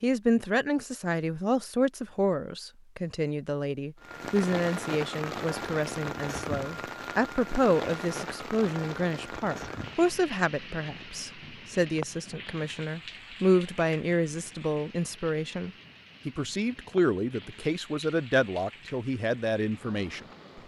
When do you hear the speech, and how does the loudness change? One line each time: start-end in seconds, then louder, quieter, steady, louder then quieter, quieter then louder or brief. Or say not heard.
0.0-20.2 steady.